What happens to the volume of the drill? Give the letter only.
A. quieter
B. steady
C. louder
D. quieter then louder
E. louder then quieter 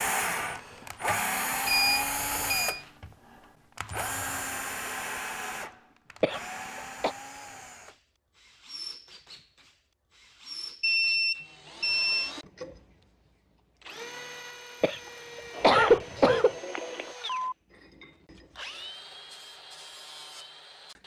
A.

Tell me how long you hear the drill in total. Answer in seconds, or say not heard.
21 s.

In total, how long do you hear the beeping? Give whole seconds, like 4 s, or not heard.
5 s.